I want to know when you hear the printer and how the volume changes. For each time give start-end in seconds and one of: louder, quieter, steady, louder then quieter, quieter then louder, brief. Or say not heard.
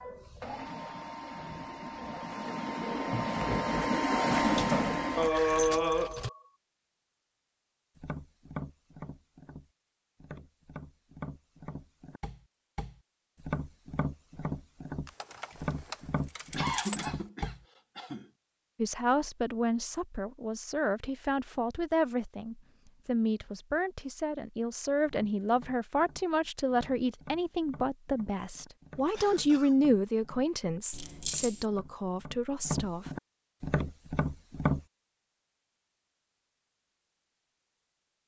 0.0-5.3 louder.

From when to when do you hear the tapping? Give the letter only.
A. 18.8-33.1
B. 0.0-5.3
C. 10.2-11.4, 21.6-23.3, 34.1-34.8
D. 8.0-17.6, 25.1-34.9
D.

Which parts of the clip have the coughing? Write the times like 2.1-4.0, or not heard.
5.2-6.3, 16.6-18.2, 29.1-29.8.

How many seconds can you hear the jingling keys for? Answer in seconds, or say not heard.
5 s.